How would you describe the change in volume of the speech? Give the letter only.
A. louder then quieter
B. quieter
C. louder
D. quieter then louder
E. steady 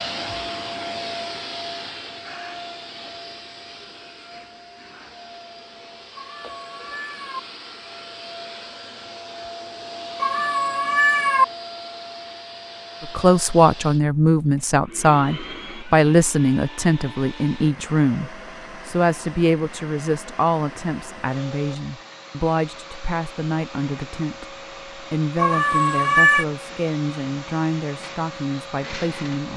B.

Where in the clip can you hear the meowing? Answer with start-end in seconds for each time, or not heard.
6.2-7.4, 10.2-11.4, 25.4-26.4.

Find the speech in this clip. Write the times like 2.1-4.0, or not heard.
13.0-29.5.